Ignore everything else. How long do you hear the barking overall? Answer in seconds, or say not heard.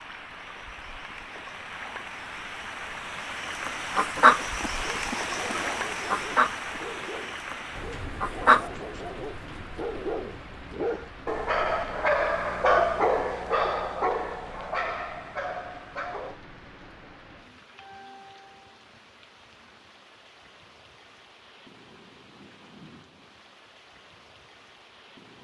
12 s.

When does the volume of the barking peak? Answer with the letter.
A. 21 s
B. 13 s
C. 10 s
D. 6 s
B.